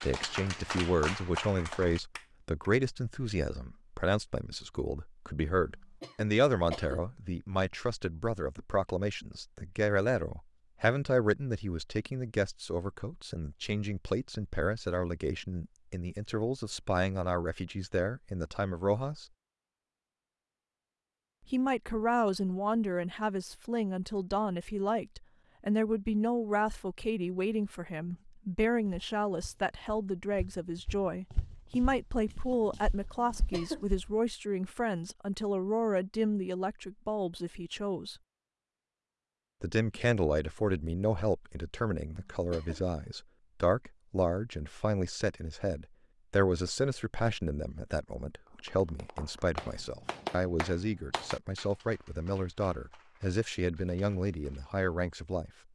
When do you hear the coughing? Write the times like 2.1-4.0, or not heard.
6.0-7.0, 33.1-33.9, 42.3-42.9.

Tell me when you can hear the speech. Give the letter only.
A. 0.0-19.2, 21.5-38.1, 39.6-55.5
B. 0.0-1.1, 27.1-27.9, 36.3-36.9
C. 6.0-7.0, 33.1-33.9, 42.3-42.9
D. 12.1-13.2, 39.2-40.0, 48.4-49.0
A.